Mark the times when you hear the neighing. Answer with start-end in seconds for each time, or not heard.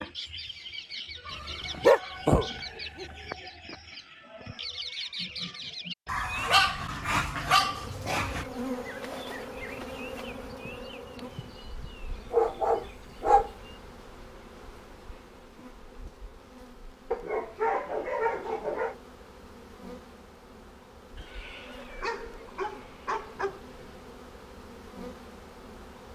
21.1-22.6.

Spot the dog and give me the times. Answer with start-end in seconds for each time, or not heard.
1.5-3.0, 6.0-8.4, 12.3-13.5, 17.1-18.9, 22.0-23.6.